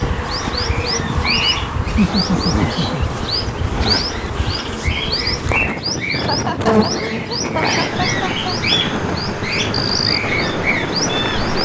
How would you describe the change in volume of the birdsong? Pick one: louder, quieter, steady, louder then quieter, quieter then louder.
steady.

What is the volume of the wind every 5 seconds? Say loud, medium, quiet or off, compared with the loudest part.
medium, loud, loud.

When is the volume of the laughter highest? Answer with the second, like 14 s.
2 s.